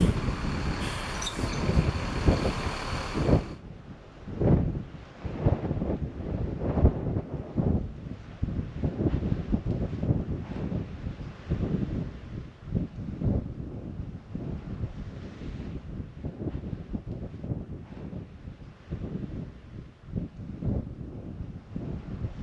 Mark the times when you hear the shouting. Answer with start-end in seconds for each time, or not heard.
not heard.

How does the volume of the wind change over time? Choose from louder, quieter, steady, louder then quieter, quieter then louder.
quieter.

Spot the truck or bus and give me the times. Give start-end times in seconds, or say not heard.
0.0-3.6.